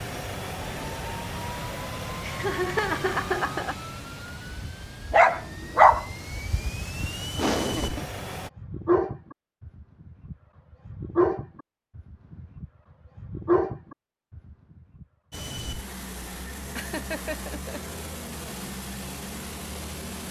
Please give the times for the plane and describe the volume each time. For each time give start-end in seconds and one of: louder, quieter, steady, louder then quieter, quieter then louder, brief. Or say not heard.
0.0-8.5 quieter then louder
15.3-20.2 steady.